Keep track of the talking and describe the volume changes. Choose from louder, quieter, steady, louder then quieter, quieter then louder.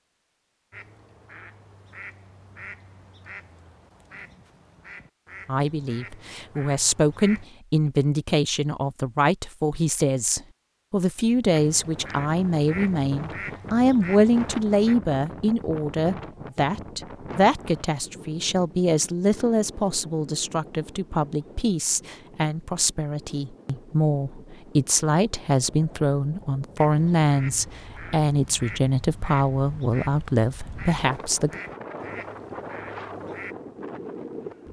steady.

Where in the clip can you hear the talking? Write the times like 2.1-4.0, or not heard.
5.5-31.6.